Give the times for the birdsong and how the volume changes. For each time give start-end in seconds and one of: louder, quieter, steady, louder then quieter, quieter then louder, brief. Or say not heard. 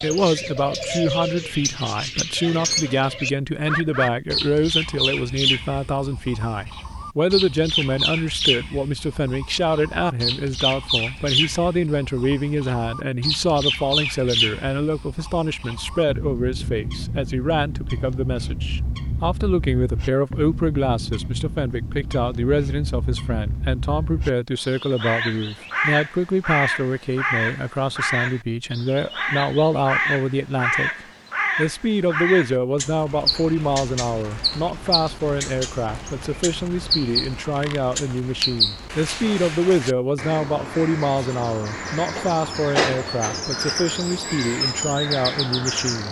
0.0-46.0 steady.